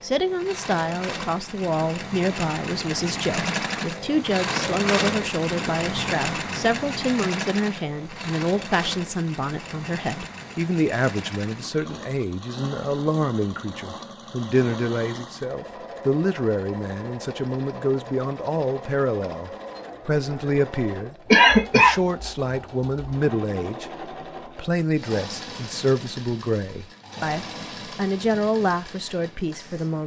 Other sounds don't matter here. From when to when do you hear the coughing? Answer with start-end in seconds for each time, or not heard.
21.3-21.9.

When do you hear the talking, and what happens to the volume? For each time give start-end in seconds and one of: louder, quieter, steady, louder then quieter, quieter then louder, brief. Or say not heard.
0.0-30.0 steady.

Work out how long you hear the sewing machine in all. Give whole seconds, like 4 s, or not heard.
30 s.